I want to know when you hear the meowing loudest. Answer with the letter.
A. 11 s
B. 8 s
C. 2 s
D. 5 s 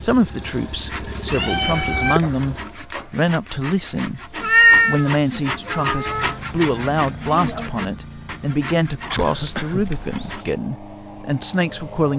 D.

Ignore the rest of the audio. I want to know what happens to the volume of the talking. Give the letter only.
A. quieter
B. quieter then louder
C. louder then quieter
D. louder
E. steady
E.